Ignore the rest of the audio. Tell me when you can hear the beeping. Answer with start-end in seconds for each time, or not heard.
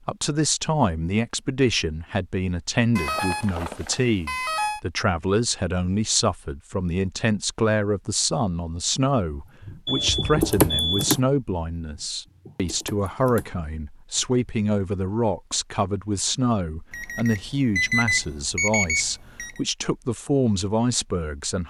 3.0-4.8, 9.8-11.1, 16.9-19.6.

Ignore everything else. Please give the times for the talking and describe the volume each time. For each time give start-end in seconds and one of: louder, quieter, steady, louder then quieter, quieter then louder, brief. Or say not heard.
0.1-21.6 steady.